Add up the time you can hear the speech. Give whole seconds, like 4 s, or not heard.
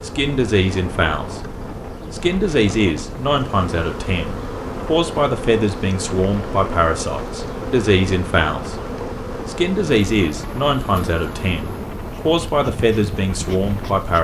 13 s.